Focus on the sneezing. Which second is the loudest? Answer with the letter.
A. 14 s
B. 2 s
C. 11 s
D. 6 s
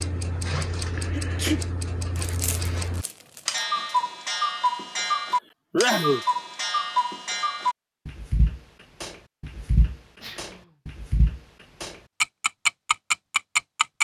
D.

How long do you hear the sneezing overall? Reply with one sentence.
You can hear the sneezing for 2 seconds altogether.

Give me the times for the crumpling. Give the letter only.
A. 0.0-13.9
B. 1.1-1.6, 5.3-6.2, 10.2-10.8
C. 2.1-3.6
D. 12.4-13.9
C.